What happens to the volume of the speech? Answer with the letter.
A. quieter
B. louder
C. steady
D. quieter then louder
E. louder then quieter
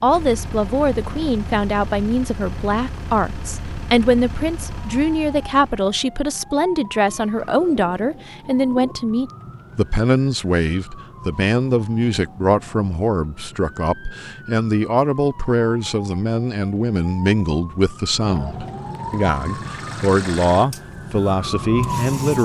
C.